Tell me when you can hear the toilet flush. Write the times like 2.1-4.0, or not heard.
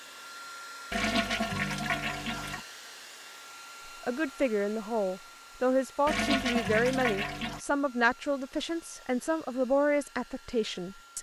0.9-2.6, 6.0-7.6.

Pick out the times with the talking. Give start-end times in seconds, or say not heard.
3.9-11.1.